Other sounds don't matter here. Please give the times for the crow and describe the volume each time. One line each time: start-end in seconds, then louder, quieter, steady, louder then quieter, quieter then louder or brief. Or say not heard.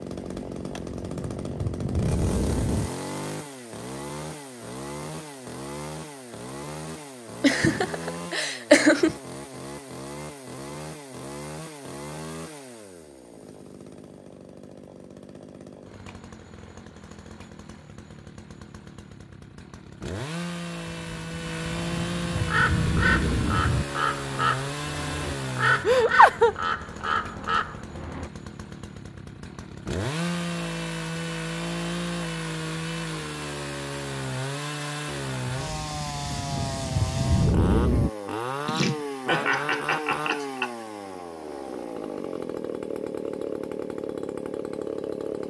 22.4-28.3 steady.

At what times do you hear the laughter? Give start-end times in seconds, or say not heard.
7.4-9.2, 25.9-26.6, 38.6-40.7.